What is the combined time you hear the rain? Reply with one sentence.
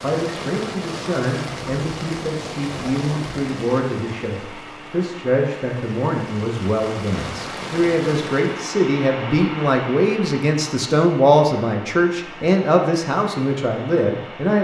You can hear the rain for 9 seconds altogether.